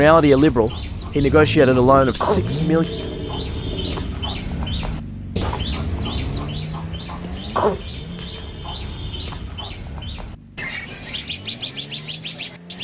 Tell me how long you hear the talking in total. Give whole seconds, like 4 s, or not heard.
3 s.